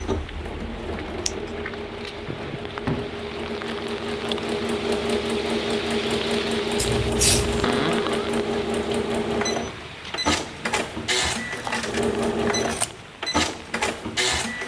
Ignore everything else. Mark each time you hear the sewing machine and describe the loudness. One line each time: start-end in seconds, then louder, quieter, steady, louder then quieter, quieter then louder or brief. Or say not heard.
0.0-14.6 louder.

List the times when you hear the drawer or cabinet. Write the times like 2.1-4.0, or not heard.
2.2-3.3, 7.6-8.2.